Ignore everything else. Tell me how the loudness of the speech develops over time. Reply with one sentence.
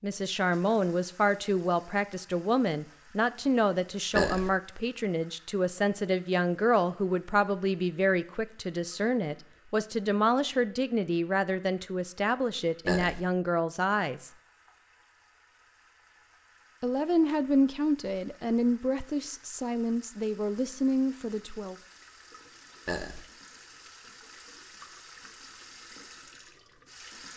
The loudness of the speech stays about the same.